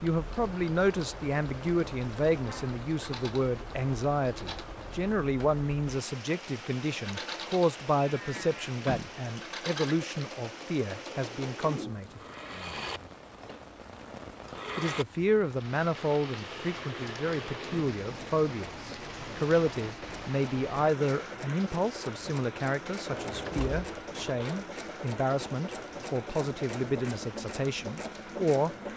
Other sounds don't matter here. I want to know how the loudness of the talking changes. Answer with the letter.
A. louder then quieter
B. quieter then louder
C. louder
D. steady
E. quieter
D.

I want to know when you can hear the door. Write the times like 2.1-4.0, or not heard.
8.3-9.2, 23.1-24.6.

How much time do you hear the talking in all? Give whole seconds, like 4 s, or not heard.
26 s.